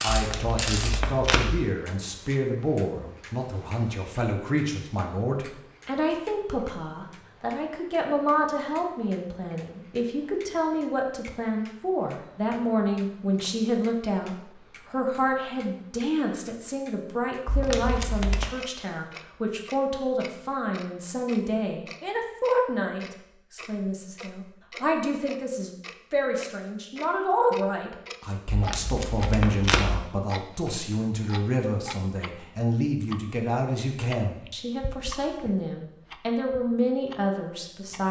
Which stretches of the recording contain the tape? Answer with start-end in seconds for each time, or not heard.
0.1-1.6, 17.4-18.4, 28.4-30.1.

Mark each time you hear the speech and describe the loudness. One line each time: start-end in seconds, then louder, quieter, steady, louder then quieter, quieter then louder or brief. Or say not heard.
0.0-38.0 steady.